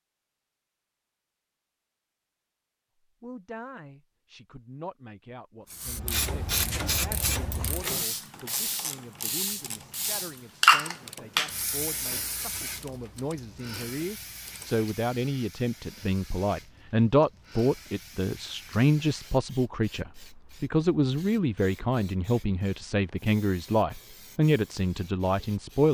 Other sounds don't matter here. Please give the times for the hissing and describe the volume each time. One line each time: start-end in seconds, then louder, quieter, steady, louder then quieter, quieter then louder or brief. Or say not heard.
5.7-25.8 louder then quieter.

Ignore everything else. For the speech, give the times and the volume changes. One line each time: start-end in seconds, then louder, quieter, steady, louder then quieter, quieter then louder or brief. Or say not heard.
3.2-25.8 louder.